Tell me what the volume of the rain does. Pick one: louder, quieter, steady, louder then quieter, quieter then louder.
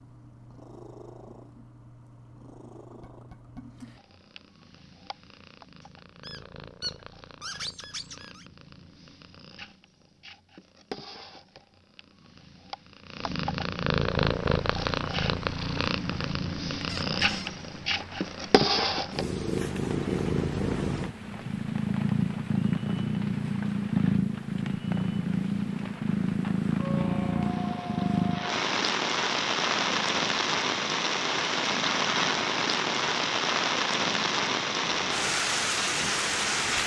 louder.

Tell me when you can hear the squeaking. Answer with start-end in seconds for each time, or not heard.
6.2-8.4, 16.9-17.5, 26.8-28.5.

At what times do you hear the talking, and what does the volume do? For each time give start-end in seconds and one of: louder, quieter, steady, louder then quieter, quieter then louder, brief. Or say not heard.
not heard.